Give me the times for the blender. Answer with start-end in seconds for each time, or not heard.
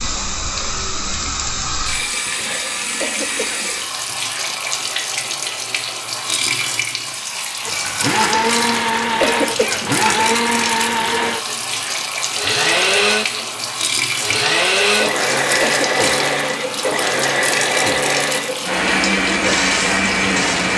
7.7-20.7.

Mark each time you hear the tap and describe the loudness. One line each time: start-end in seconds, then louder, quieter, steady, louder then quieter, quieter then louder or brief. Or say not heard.
0.0-20.7 steady.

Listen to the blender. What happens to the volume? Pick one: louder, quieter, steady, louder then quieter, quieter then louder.
steady.